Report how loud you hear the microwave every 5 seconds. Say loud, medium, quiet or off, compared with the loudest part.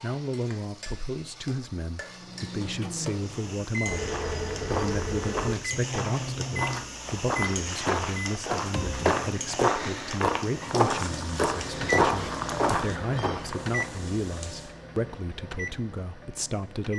loud, loud, loud, medium.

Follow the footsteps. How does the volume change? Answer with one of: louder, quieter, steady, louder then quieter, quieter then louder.
louder.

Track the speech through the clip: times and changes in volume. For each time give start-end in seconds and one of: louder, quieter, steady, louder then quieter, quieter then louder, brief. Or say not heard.
0.0-16.9 steady.